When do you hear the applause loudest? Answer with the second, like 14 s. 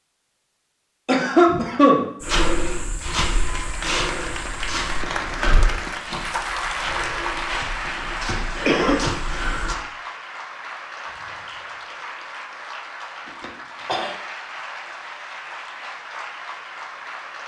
7 s.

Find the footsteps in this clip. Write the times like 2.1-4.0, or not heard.
2.2-9.8.